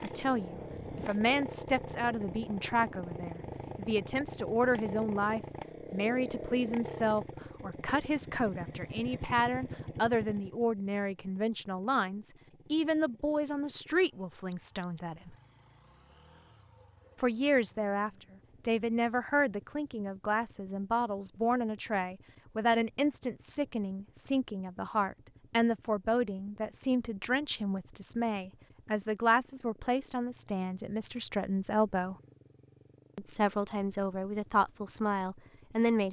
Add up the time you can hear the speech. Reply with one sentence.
The speech can be heard for 33 seconds in total.